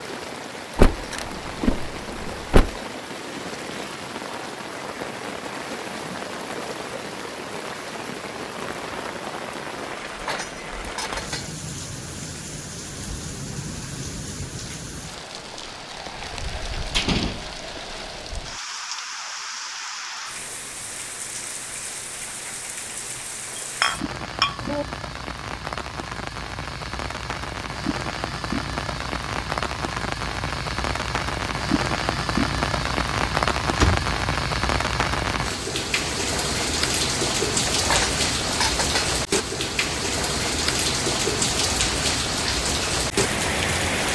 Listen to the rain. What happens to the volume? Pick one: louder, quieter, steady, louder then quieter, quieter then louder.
louder.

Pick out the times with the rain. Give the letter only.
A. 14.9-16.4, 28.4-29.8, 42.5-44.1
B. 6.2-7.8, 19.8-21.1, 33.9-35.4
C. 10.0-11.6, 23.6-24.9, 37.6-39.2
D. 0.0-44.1
D.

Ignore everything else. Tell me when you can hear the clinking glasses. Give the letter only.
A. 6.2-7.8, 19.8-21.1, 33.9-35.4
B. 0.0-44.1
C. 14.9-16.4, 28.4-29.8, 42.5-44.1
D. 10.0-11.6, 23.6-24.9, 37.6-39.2
D.